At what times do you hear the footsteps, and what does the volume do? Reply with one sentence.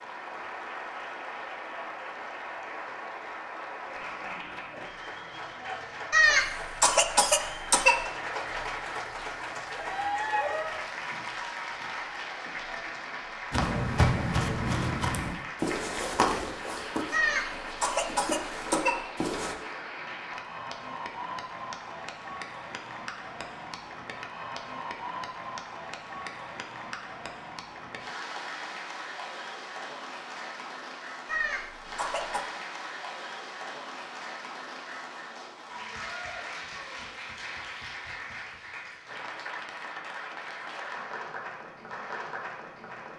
The footsteps can be heard from 13.5 to 19.6 s, getting quieter then louder.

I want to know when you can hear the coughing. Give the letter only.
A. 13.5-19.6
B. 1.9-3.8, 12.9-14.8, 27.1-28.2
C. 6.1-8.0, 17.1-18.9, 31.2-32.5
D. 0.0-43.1
C.